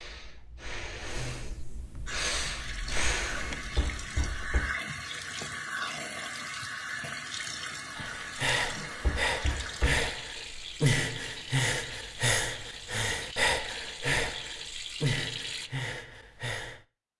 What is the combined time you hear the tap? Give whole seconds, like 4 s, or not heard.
14 s.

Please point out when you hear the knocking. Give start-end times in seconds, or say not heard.
3.8-4.8, 9.0-10.1.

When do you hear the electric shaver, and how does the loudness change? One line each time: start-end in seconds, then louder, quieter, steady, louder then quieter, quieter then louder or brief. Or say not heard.
not heard.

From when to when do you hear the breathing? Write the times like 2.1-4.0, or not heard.
0.0-4.6, 8.0-16.8.